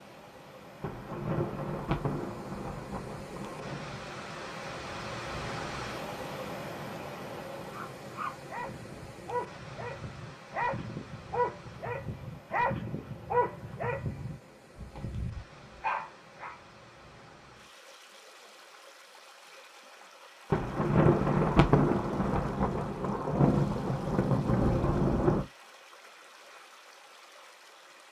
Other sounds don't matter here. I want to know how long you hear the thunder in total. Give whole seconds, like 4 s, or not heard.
8 s.